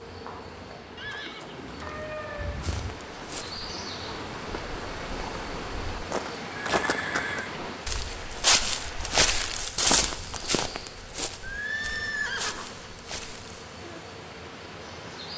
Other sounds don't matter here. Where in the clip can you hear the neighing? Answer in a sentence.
The neighing can be heard from 0.9 to 3.0 s, from 6.6 to 7.6 s and from 11.4 to 12.8 s.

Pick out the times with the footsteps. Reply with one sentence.
The footsteps can be heard from 2.5 to 13.7 s.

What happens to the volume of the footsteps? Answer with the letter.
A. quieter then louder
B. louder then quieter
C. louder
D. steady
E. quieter
B.